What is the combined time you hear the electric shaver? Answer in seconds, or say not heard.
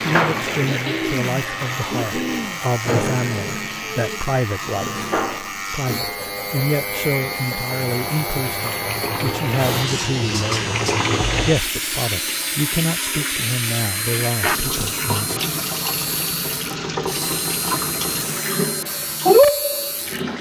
20 s.